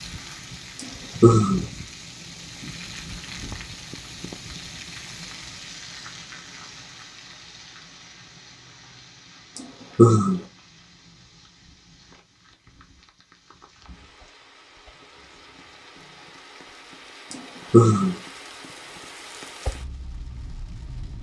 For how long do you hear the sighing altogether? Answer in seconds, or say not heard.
2 s.